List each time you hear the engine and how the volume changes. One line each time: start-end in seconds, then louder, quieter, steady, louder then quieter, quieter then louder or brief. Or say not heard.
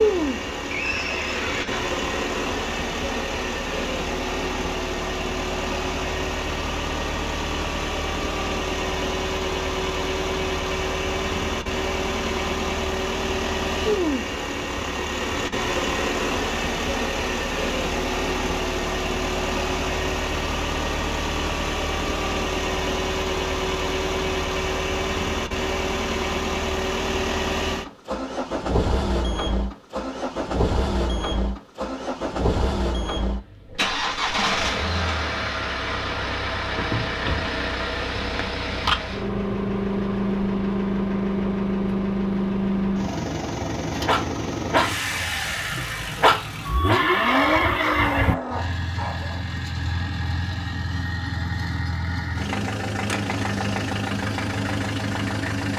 0.0-55.7 steady.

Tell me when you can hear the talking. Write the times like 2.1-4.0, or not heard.
not heard.